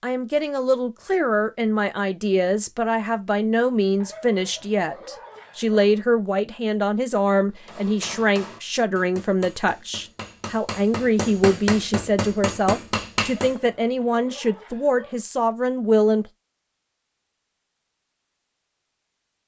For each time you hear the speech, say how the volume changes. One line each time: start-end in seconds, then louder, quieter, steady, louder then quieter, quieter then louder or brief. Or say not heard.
0.0-16.3 steady.